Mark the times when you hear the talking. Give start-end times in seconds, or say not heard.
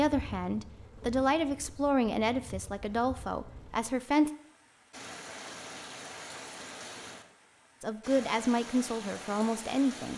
0.0-4.3, 7.8-10.1.